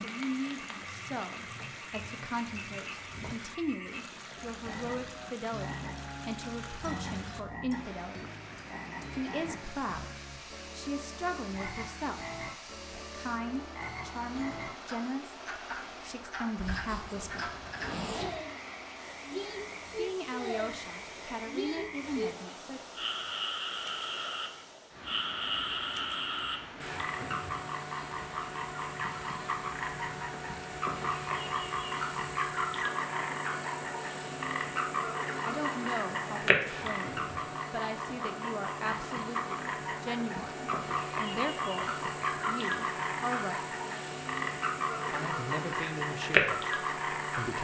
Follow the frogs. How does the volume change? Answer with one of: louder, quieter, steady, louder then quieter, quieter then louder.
louder.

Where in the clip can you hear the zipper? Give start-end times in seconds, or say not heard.
16.6-18.4.